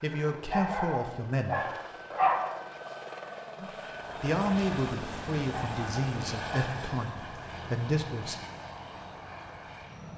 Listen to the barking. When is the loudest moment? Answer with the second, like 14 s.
2 s.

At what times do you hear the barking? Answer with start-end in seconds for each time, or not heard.
0.5-2.5, 5.5-6.7.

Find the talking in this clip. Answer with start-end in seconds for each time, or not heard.
0.0-1.6, 3.5-8.3.